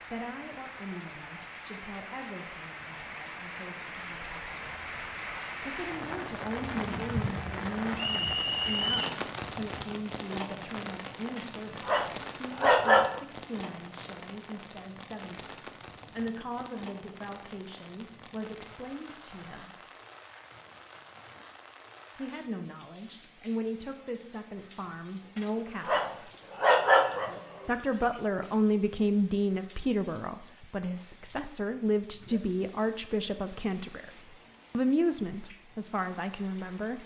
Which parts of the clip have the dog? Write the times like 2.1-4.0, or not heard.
11.3-13.2, 25.4-27.7.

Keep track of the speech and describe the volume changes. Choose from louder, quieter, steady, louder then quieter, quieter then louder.
louder.